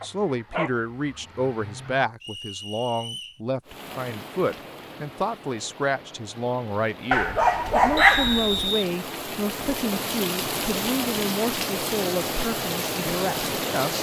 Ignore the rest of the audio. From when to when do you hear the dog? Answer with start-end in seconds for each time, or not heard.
0.0-1.9, 7.1-8.7.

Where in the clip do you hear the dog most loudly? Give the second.
8 s.